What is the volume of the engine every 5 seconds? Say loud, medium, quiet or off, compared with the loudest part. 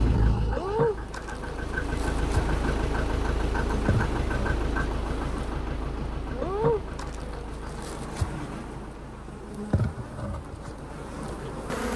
loud, medium, quiet.